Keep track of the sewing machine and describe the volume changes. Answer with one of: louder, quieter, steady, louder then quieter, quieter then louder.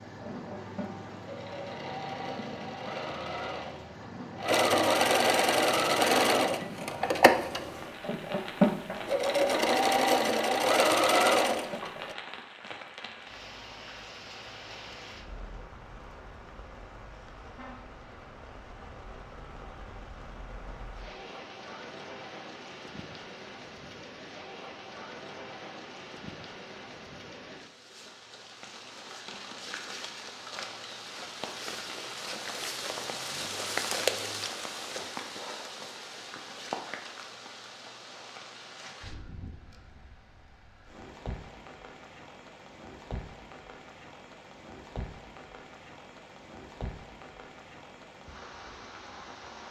louder.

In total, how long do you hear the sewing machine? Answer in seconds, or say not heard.
12 s.